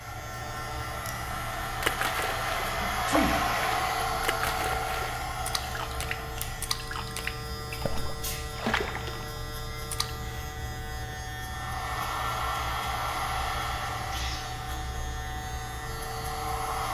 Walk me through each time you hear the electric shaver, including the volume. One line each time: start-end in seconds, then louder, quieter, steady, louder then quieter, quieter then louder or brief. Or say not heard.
0.0-16.8 steady.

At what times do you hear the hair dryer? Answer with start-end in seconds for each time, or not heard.
0.0-6.8, 11.4-16.8.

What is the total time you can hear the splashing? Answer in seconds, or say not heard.
8 s.